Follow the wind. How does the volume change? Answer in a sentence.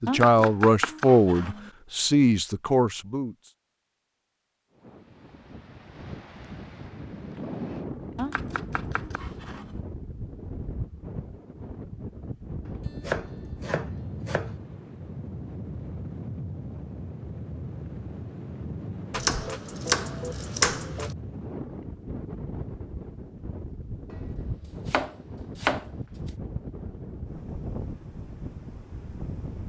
The volume of the wind stays about the same.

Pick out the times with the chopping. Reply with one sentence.
The chopping can be heard from 0.1 to 1.7 s, from 8.2 to 9.8 s, from 12.7 to 14.6 s, from 19.1 to 21.1 s and from 24.9 to 25.9 s.